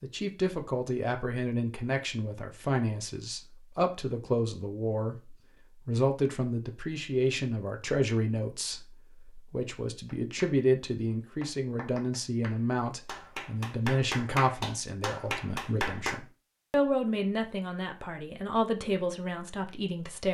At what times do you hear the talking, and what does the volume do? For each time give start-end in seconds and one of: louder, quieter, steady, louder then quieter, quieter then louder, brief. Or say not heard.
0.0-20.2 steady.